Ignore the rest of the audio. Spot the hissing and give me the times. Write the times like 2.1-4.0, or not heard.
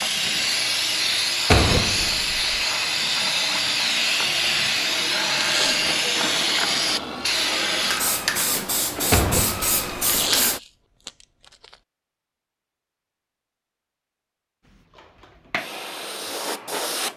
0.0-10.6, 14.7-17.1.